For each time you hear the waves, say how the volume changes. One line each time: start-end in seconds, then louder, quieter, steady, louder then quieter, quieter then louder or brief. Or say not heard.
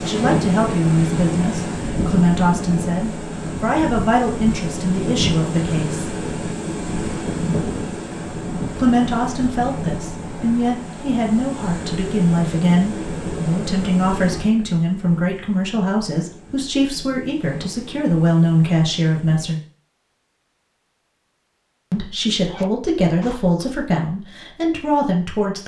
0.0-19.5 quieter.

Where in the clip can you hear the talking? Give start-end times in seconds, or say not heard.
0.0-6.2, 8.8-19.6, 21.9-25.6.